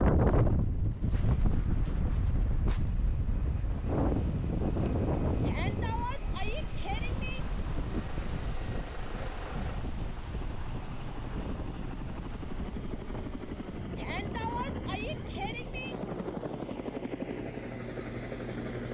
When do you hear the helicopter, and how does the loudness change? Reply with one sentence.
You can hear the helicopter from 0.0 to 18.8 s, getting louder.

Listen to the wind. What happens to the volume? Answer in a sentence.
The loudness of the wind goes down.